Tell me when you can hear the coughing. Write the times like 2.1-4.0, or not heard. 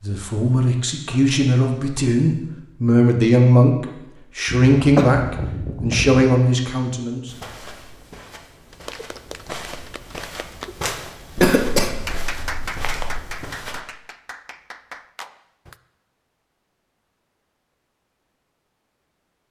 4.5-6.2, 11.3-13.2.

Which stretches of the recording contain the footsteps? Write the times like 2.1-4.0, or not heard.
7.2-13.8.